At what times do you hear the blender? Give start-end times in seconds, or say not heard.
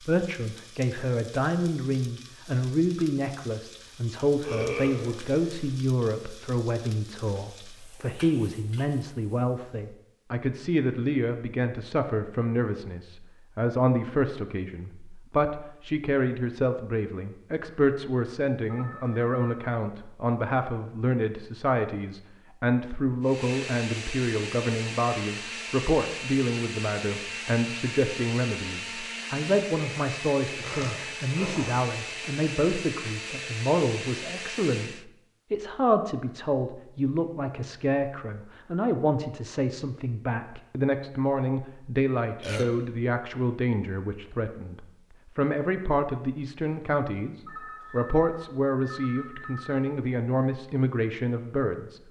23.2-35.0.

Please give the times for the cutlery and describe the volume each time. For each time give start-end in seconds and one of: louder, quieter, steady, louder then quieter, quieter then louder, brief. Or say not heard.
not heard.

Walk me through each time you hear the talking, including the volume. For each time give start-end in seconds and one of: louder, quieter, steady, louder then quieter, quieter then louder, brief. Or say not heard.
0.0-52.0 steady.